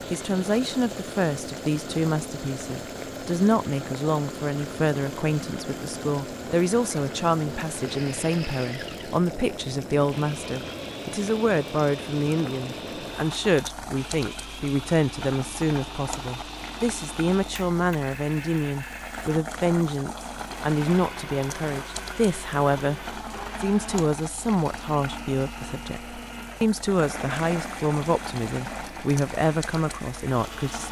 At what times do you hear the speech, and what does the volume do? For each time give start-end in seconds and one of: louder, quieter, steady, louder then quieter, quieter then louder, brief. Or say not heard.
0.1-30.8 steady.